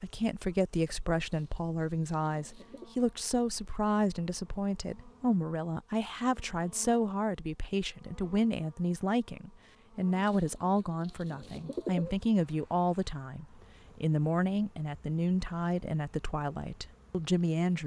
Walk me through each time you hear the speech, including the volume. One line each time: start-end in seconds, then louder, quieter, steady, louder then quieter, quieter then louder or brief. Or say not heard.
0.0-17.8 steady.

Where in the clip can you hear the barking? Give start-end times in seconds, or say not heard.
not heard.